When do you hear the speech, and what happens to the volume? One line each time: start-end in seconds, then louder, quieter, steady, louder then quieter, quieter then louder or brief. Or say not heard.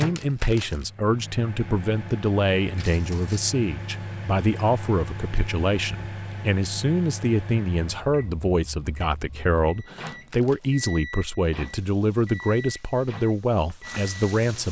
0.0-14.6 steady.